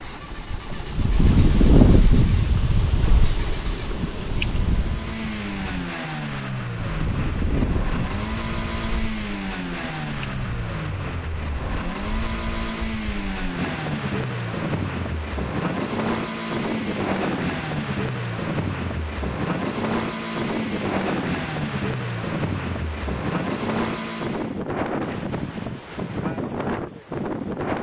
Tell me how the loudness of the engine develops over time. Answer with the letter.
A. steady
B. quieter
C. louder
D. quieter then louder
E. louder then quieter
C.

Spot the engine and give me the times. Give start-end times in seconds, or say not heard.
0.0-24.6.